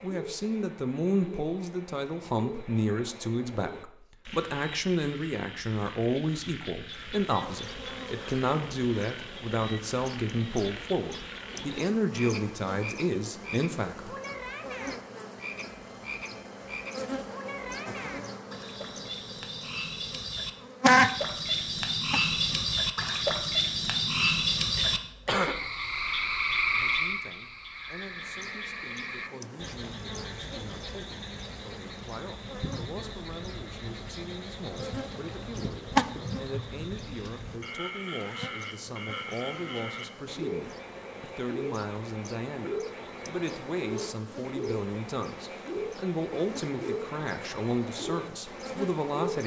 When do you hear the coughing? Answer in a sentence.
You can hear the coughing from 24.8 to 25.7 s.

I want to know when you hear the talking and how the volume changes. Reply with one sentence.
You can hear the talking from 0.0 to 14.2 s, at a steady volume; and from 26.7 to 49.4 s, getting louder.